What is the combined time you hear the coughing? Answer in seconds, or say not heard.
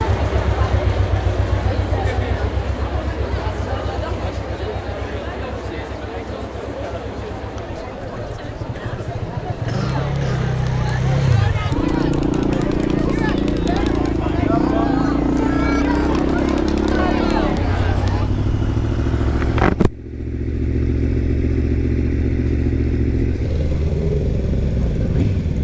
2 s.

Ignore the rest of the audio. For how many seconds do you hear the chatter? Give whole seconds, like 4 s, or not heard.
18 s.